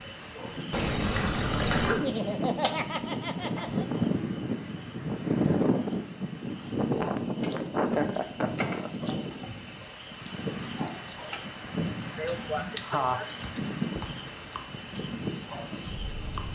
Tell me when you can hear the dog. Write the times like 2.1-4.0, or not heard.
not heard.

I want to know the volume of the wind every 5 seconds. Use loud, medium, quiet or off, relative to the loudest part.
loud, loud, medium, medium.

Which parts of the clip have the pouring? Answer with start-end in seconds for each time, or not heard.
0.7-2.0.